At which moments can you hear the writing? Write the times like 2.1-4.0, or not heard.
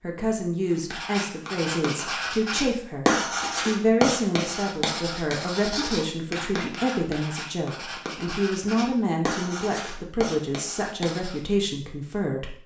0.9-11.6.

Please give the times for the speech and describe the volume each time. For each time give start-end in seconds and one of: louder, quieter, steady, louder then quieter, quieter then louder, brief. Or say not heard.
0.0-12.6 steady.